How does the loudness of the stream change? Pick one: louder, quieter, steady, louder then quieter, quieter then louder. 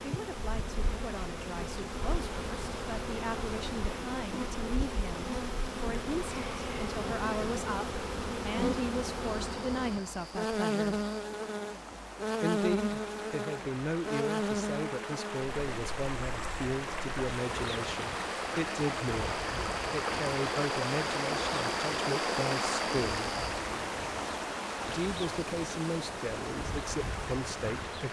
louder.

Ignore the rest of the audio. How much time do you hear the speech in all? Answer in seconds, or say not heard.
25 s.